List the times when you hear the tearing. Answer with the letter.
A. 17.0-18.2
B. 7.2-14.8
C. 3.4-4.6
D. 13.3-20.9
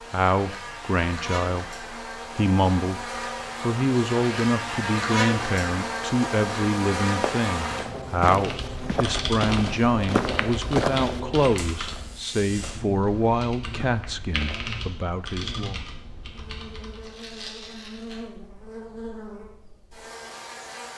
A.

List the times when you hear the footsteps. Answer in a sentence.
You can hear the footsteps from 7.2 to 14.8 s.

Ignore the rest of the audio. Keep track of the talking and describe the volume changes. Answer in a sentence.
The volume of the talking stays about the same.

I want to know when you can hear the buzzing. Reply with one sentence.
You can hear the buzzing from 0.0 to 20.9 s.